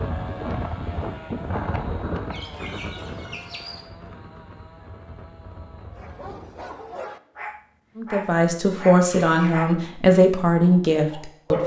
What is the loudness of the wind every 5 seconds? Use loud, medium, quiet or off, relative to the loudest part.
loud, quiet, off.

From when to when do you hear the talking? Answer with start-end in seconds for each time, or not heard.
8.0-11.6.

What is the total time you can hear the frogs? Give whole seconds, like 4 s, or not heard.
not heard.